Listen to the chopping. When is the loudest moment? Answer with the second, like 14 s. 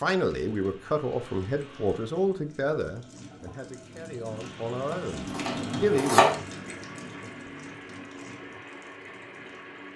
6 s.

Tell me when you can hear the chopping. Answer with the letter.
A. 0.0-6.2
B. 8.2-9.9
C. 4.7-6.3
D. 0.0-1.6
C.